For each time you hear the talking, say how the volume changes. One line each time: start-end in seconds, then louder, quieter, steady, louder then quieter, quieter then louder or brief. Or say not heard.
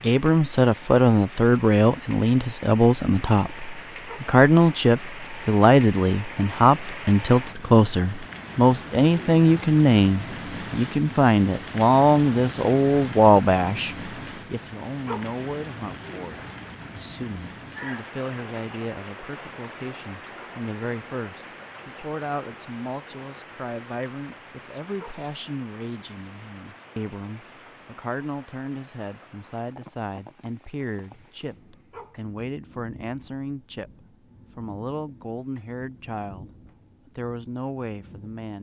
0.0-38.5 quieter.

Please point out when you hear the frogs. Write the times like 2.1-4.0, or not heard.
not heard.